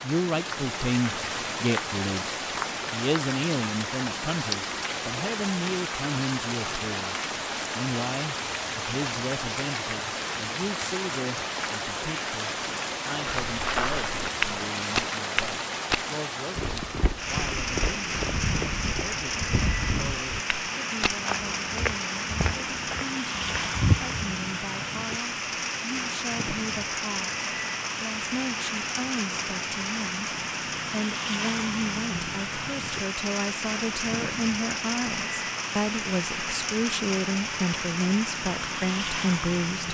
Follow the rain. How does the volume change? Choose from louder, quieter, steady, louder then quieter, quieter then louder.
steady.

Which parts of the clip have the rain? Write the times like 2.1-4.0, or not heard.
0.0-39.8.